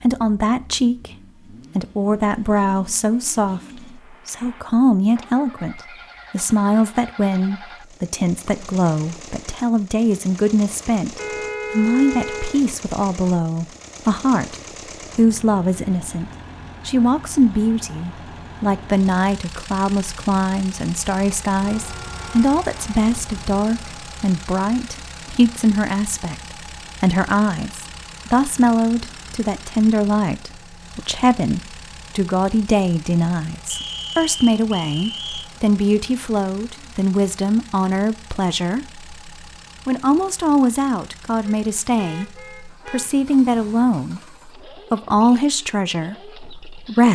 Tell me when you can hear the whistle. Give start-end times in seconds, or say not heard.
33.7-35.5.